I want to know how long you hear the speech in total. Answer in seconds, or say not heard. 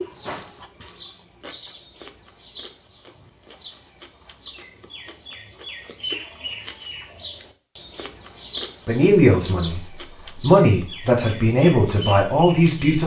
4 s.